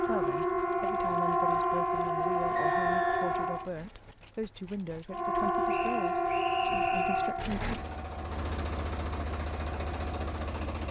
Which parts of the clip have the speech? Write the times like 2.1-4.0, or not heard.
0.0-7.8.